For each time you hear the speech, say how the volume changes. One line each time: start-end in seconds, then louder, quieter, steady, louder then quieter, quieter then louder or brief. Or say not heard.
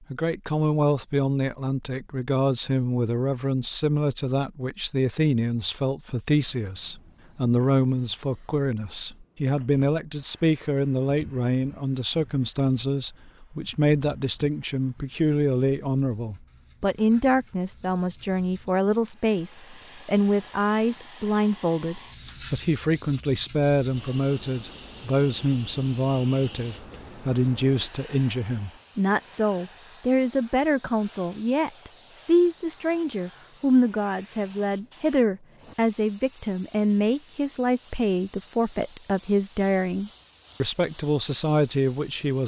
0.1-42.4 steady.